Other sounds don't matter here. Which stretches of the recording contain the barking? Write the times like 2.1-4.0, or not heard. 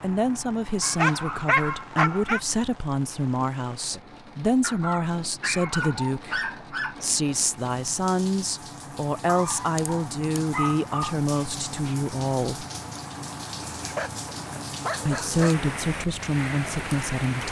0.8-2.4, 4.6-7.0, 9.2-11.2, 13.7-15.7.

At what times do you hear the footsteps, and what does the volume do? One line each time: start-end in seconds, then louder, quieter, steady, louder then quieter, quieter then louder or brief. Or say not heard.
not heard.